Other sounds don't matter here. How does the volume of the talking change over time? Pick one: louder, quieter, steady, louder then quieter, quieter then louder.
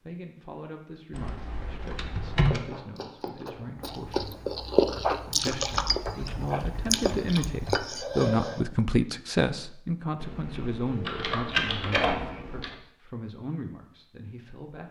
louder then quieter.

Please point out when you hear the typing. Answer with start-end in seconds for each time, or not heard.
1.1-2.6, 5.8-7.8, 10.2-12.8.